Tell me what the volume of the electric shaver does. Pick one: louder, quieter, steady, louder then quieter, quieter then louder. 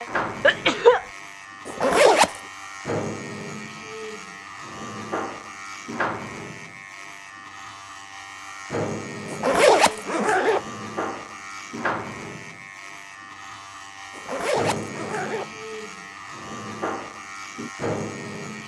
steady.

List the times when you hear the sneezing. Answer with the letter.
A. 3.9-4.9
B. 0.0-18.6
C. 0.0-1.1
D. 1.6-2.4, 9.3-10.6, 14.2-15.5
C.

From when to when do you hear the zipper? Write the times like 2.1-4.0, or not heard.
1.6-2.4, 9.3-10.6, 14.2-15.5.